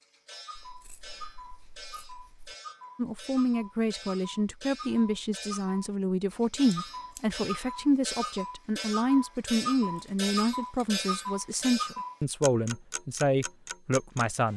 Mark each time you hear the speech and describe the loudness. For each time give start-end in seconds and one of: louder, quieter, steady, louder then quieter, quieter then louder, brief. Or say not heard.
3.0-14.5 steady.